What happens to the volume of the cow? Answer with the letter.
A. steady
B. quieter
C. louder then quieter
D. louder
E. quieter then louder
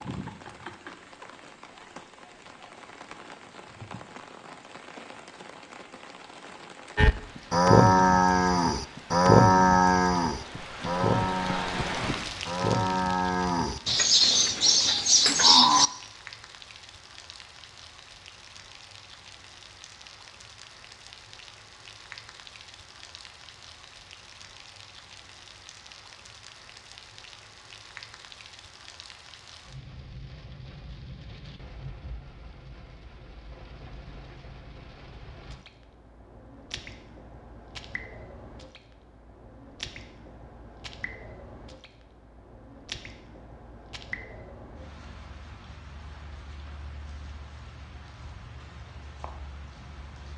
E.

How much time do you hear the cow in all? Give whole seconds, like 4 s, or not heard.
9 s.